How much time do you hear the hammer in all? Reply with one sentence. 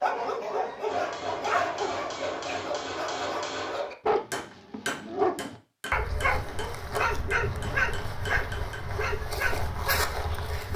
You can hear the hammer for 8 seconds altogether.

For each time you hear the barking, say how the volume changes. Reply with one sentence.
You can hear the barking from 0.0 to 10.7 s, at a steady volume.